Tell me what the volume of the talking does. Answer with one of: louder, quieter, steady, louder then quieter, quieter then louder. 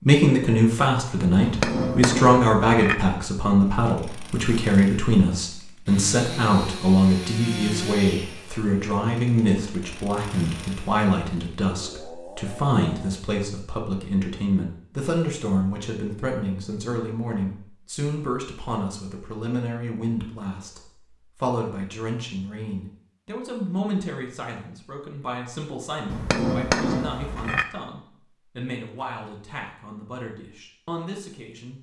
quieter.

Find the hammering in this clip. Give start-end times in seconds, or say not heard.
1.4-3.0, 26.1-27.6.